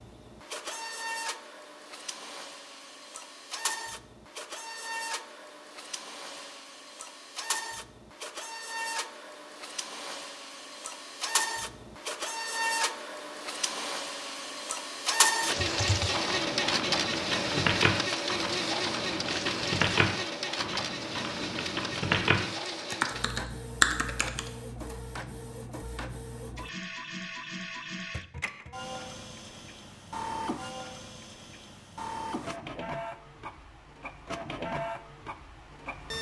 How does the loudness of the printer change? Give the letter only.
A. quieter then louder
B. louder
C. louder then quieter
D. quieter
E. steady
C.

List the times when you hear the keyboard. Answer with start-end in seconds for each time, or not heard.
15.6-24.5.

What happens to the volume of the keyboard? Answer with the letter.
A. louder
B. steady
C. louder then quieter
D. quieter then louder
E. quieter
A.